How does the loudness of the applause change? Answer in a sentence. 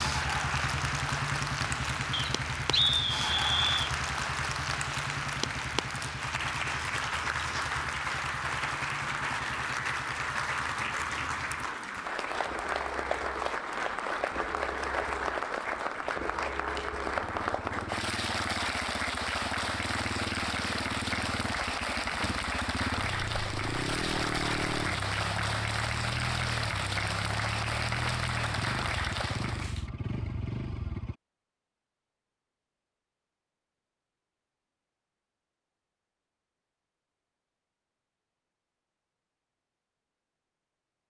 The volume of the applause stays about the same.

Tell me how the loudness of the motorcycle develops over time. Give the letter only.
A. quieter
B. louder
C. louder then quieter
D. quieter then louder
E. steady
D.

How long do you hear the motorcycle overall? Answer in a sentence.
The motorcycle can be heard for 31 seconds in total.